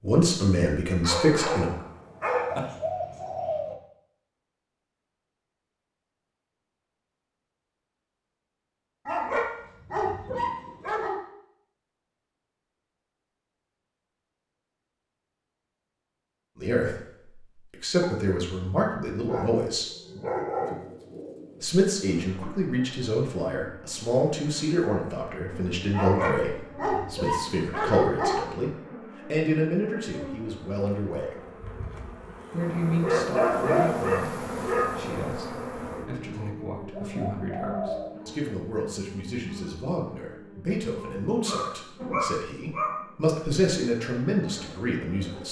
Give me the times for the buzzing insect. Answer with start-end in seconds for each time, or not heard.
21.9-45.4.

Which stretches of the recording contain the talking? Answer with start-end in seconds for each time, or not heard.
0.0-1.7, 16.6-19.9, 21.6-31.4, 32.5-45.4.